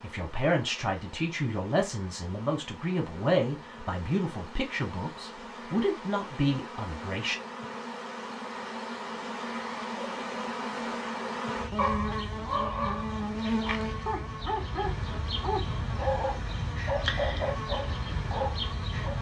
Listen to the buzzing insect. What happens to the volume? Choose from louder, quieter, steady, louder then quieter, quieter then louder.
louder.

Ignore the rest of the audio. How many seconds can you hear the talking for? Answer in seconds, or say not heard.
7 s.